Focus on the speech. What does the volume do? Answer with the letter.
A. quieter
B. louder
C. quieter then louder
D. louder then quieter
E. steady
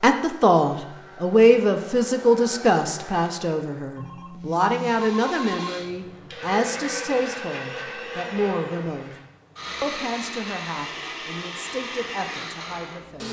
A.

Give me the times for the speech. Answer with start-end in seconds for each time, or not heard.
0.0-9.2, 9.8-13.2.